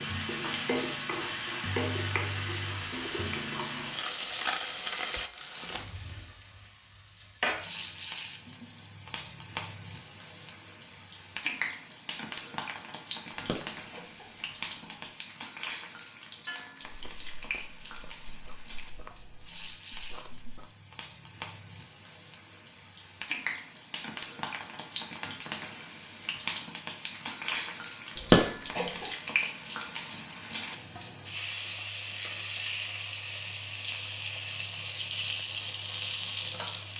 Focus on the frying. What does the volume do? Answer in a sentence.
The loudness of the frying goes down, then up.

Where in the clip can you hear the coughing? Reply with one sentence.
The coughing can be heard from 13.3 to 15.0 s and from 28.2 to 29.1 s.